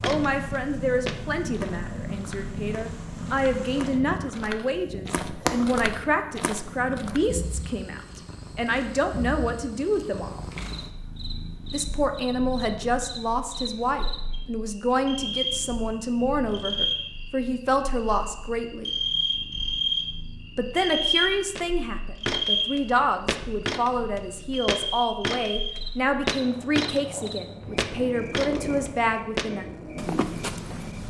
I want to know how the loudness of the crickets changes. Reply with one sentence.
The volume of the crickets goes up, then down.